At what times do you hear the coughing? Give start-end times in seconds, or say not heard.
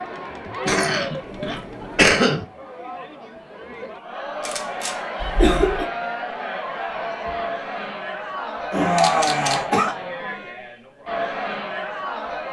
0.5-2.5, 5.2-5.8, 8.7-9.9.